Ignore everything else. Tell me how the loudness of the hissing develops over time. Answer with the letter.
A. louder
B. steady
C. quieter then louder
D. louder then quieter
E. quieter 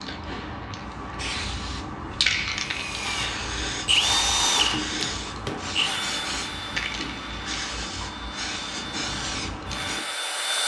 B.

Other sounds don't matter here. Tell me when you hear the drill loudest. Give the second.
4 s.